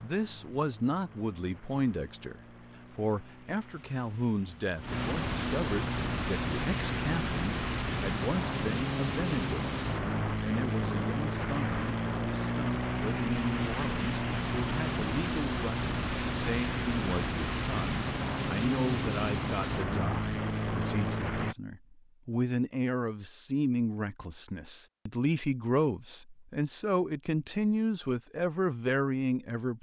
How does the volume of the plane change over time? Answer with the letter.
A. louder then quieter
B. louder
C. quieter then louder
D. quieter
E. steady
B.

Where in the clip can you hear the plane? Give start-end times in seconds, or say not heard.
0.0-21.6.